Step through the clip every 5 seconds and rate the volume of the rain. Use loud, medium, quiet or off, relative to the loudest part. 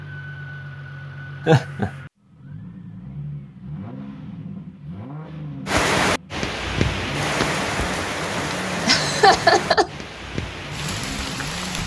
off, loud, medium.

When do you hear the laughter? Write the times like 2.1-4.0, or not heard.
1.4-1.9, 8.8-9.9.